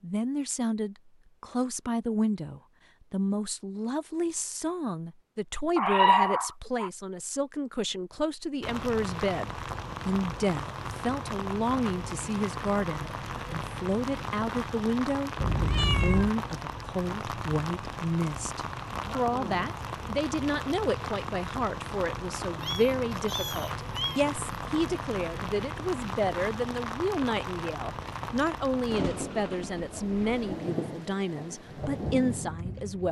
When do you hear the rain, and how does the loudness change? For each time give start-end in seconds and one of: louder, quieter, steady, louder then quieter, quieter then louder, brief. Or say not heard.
8.6-33.0 steady.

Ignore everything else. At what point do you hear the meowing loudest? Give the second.
6 s.